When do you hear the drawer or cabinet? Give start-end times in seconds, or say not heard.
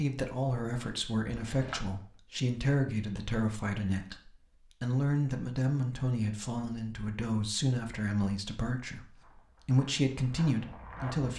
1.2-2.2.